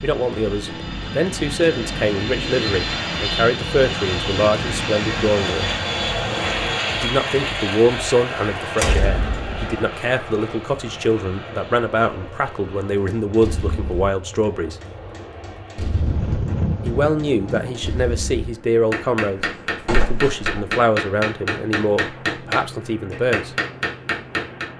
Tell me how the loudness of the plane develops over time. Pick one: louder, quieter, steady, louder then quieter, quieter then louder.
quieter.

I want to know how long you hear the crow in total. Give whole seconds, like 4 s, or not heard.
not heard.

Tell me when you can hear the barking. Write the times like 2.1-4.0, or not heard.
not heard.